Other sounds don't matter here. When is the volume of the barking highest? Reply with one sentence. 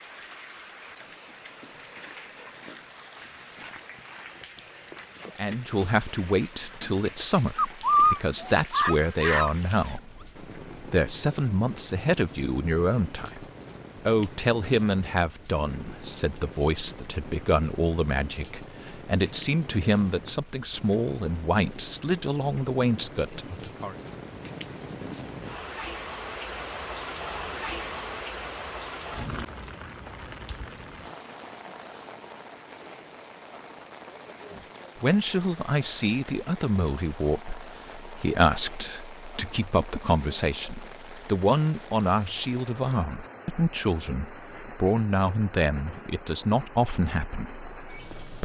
The volume of the barking peaks at 8 seconds.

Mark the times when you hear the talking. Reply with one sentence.
The talking can be heard from 5.3 to 13.4 s, from 14.1 to 23.9 s and from 34.5 to 48.4 s.